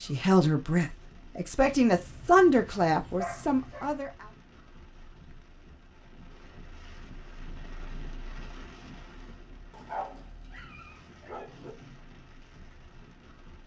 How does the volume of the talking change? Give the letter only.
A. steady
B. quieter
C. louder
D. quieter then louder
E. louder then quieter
E.